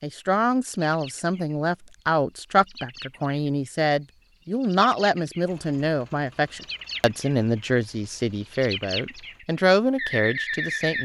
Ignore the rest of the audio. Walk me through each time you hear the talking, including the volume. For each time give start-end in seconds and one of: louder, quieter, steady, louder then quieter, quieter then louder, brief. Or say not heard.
0.0-11.0 steady.